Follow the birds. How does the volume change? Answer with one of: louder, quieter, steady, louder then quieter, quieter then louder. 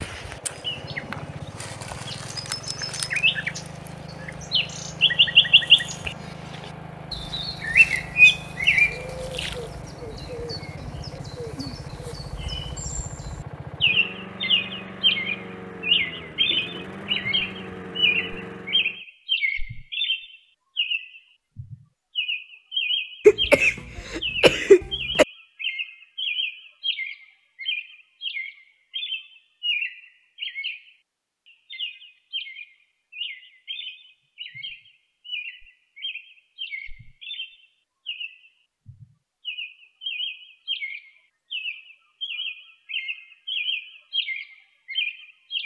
quieter.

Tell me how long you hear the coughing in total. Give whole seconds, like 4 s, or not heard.
2 s.